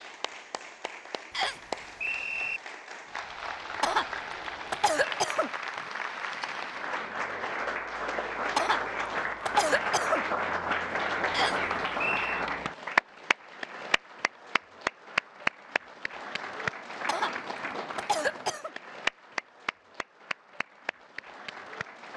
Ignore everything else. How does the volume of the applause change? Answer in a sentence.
The loudness of the applause goes up, then down.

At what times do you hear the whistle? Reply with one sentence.
The whistle can be heard from 1.3 to 2.6 s and from 11.3 to 12.4 s.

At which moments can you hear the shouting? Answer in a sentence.
You can't hear the shouting here.